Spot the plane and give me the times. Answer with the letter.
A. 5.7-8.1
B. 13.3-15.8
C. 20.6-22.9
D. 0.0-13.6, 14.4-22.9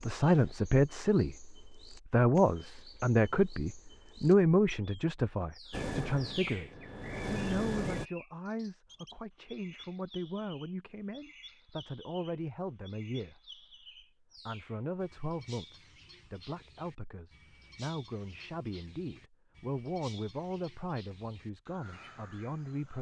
A.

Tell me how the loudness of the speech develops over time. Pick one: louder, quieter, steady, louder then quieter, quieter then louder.
quieter.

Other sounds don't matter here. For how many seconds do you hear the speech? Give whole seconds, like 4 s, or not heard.
22 s.